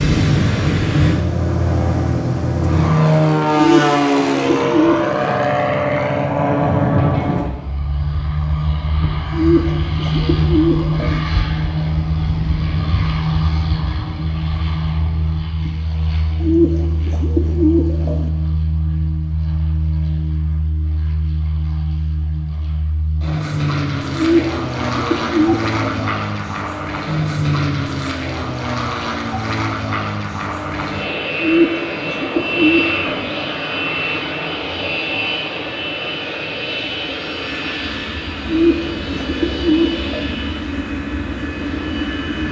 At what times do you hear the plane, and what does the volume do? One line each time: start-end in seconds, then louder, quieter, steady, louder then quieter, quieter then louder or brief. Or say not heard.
0.0-42.4 quieter.